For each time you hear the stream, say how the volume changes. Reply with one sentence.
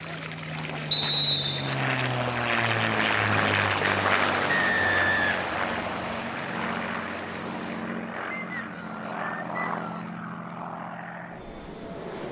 You can hear the stream from 0.0 to 8.0 s, getting louder then quieter.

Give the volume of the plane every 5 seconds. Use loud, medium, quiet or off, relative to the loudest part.
loud, medium, medium.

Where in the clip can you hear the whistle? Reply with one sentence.
The whistle can be heard from 0.9 to 1.8 s, from 4.5 to 6.2 s and from 8.3 to 10.1 s.